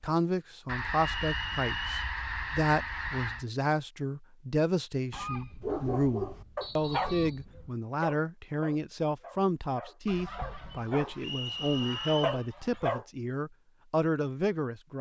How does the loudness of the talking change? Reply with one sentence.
The volume of the talking stays about the same.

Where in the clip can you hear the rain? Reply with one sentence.
You can't hear the rain here.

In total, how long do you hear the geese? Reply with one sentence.
You can hear the geese for 8 seconds altogether.